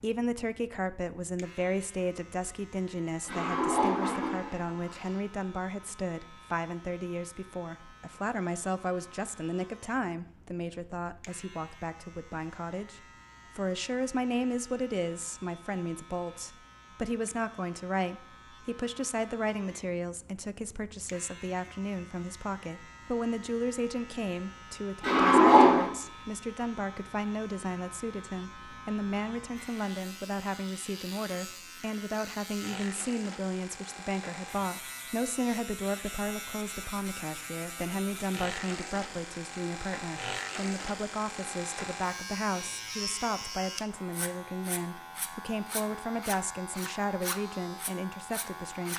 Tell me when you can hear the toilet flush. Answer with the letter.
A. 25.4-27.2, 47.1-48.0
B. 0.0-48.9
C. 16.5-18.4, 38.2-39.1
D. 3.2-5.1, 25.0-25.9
D.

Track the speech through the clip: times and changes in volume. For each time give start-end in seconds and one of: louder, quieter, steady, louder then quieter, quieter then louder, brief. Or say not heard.
0.0-48.9 steady.